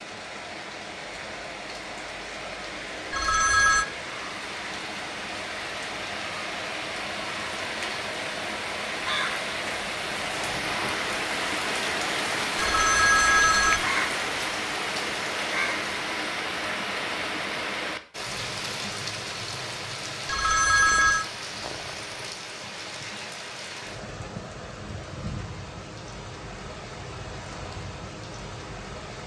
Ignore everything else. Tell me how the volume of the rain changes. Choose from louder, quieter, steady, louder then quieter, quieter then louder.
louder then quieter.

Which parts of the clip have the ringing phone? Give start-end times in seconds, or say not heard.
3.1-3.9, 12.6-13.8, 20.2-21.2.